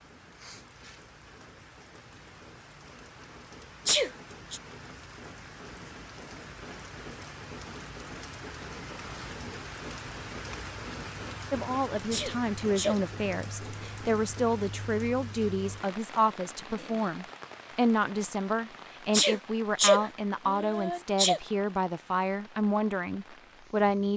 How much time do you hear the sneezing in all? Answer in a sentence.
The sneezing can be heard for 4 seconds in total.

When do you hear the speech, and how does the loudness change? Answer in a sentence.
You can hear the speech from 11.5 to 24.1 s, at a steady volume.